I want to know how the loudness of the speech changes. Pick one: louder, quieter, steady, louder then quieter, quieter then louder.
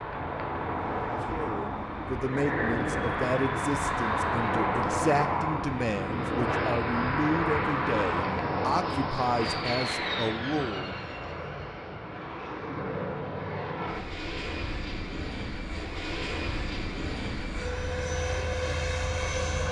steady.